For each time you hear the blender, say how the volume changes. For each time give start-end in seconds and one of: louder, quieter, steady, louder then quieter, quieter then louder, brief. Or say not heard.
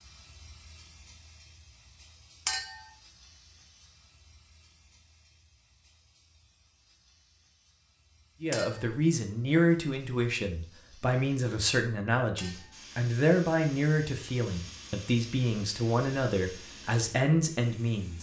not heard.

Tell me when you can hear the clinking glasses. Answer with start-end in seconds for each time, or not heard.
2.5-2.9, 8.5-8.9, 12.3-12.8.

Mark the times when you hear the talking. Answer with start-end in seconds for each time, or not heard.
8.4-18.1.